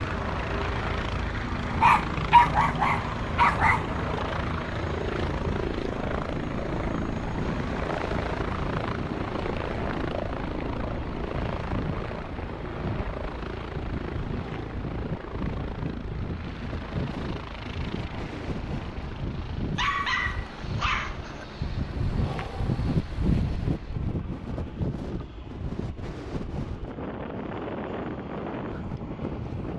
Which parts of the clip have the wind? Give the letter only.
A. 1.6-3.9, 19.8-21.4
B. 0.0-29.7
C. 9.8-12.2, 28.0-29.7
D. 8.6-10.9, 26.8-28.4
B.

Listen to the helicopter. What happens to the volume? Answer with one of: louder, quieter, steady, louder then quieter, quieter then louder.
quieter.